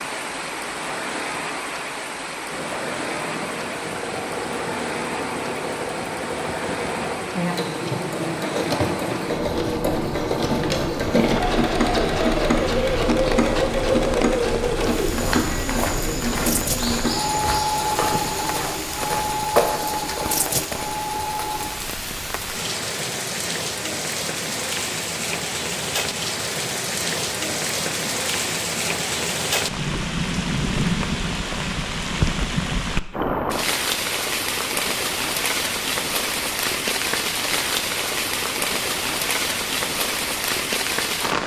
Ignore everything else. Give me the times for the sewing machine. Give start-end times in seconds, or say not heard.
2.5-21.7.